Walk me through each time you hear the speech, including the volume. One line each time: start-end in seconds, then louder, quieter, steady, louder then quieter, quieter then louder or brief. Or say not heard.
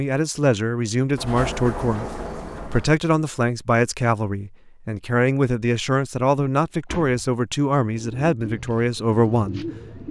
0.0-10.0 steady.